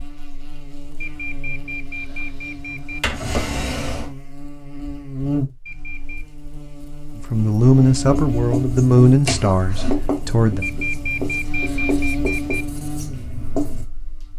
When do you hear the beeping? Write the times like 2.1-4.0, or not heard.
1.0-3.0, 5.7-6.3, 10.6-12.7.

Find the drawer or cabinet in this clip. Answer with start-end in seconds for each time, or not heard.
2.9-4.1, 9.2-9.9.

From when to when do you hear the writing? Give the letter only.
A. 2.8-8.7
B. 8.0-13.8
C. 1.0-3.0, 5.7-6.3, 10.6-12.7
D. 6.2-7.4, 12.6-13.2
B.